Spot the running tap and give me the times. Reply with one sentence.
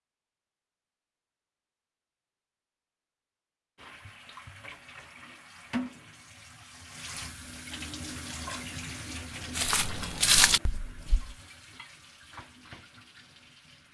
You can hear the running tap from 3.8 to 13.8 s.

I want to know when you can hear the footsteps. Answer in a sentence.
You can hear the footsteps from 9.5 to 11.3 s.